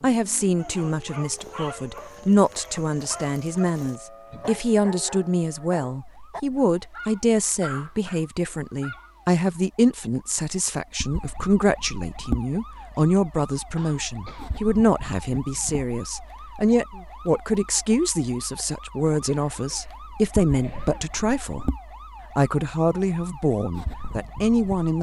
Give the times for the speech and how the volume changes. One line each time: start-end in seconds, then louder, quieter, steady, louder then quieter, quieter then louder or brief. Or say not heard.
0.0-21.6 steady
22.4-24.9 brief.